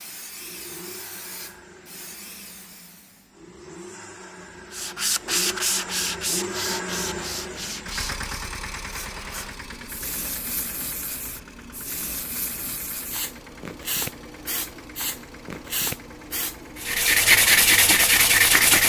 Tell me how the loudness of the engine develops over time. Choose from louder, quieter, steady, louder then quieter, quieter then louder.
louder then quieter.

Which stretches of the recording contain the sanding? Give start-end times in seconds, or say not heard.
4.7-8.3, 16.8-18.8.